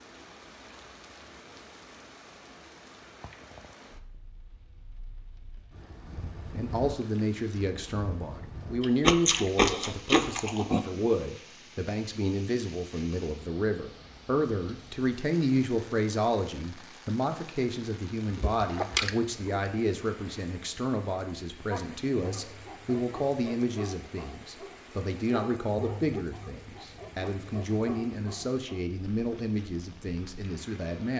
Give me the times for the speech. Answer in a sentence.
You can hear the speech from 6.5 to 31.1 s.